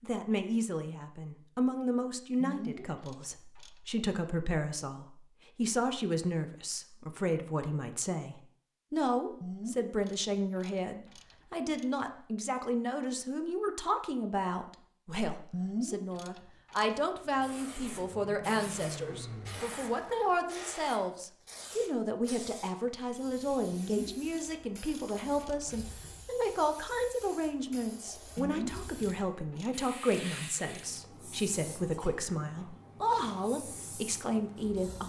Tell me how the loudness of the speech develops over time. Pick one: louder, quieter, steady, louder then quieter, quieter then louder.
steady.